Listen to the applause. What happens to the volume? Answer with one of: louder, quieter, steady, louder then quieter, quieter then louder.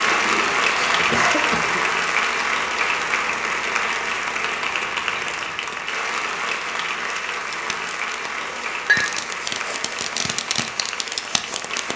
quieter.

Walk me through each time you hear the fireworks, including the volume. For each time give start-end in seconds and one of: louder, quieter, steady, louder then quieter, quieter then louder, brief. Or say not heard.
7.5-11.9 louder.